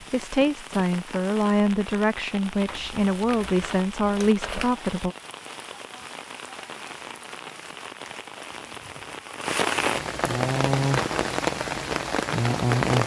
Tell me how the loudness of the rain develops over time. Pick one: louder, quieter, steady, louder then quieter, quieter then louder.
louder.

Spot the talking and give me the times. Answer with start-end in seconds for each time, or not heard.
0.1-5.2.